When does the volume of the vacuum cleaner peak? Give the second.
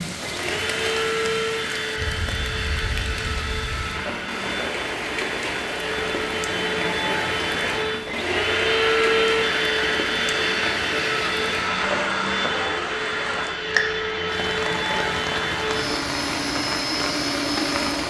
9 s.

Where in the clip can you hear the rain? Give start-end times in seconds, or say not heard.
0.0-18.0.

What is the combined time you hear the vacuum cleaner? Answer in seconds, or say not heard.
18 s.